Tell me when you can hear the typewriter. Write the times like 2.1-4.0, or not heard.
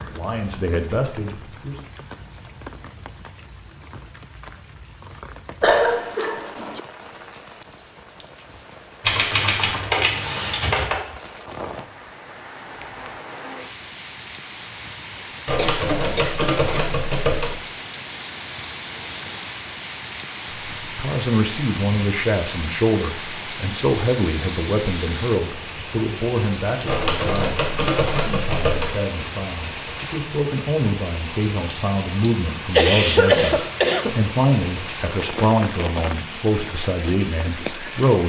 9.0-10.9, 15.4-17.6, 26.9-28.9.